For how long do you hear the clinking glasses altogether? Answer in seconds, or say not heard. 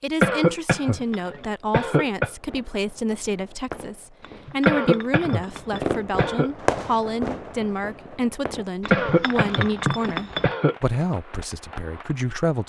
4 s.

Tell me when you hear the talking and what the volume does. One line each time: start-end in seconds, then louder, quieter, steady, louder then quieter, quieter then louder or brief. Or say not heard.
0.0-12.6 steady.